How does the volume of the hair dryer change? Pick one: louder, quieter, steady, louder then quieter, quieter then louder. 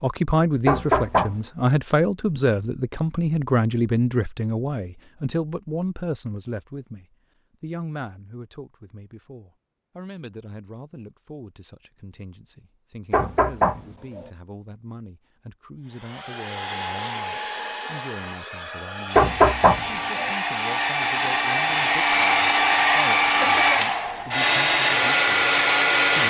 louder.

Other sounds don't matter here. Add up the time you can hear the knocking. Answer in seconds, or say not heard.
3 s.